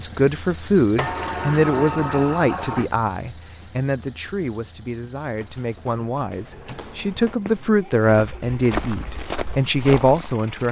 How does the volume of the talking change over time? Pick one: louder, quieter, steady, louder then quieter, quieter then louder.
quieter then louder.